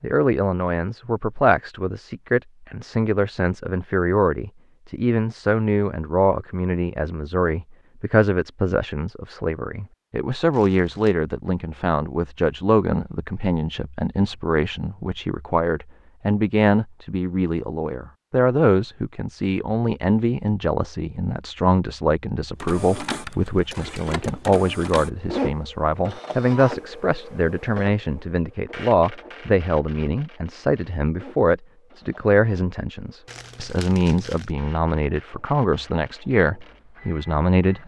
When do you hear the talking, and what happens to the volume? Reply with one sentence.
The talking can be heard from 0.0 to 37.8 s, at a steady volume.